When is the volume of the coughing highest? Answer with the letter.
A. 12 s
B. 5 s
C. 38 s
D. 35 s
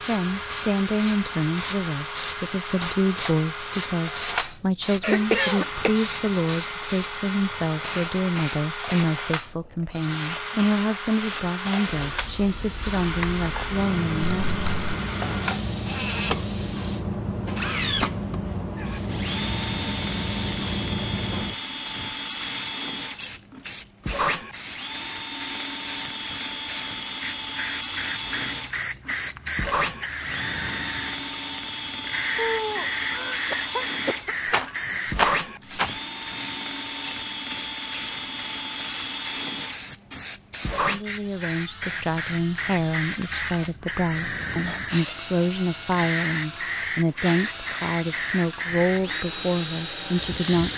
B.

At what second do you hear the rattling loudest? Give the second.
35 s.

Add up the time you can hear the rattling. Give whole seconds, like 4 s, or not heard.
2 s.